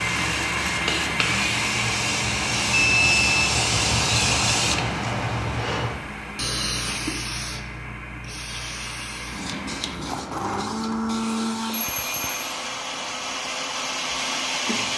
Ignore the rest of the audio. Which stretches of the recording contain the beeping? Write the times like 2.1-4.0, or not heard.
2.7-3.5, 11.7-12.5.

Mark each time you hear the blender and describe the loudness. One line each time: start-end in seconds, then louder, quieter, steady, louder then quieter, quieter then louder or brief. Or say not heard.
0.0-14.9 quieter then louder.